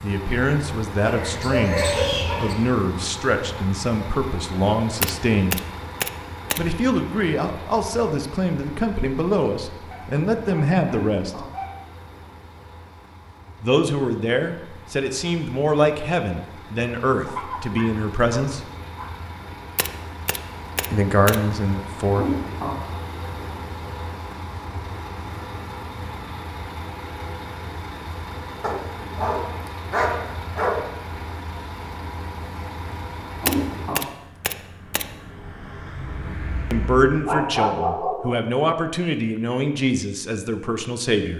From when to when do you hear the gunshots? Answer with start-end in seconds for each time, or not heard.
5.0-6.6, 19.8-21.4, 33.5-35.0.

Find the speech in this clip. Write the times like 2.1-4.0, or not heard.
0.0-5.6, 6.5-11.4, 13.6-18.6, 20.9-22.2, 36.7-41.3.